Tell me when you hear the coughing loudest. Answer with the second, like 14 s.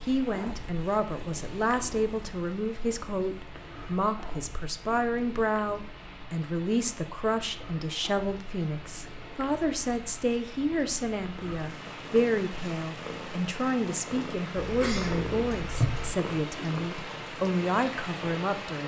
16 s.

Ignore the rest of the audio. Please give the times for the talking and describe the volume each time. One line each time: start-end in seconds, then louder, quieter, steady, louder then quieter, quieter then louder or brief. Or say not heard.
0.0-18.8 steady.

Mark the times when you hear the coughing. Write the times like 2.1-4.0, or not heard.
14.5-16.1.